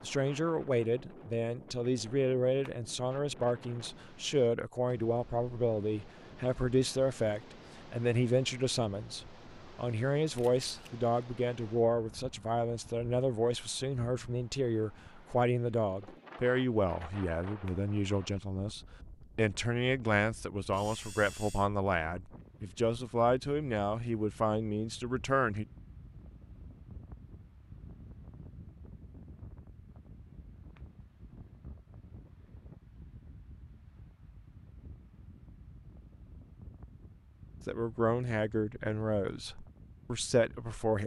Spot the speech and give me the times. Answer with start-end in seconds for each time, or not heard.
0.0-25.6, 37.6-41.0.